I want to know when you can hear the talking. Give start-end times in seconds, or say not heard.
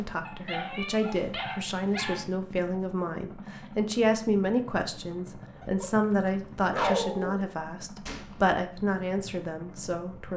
0.0-10.3.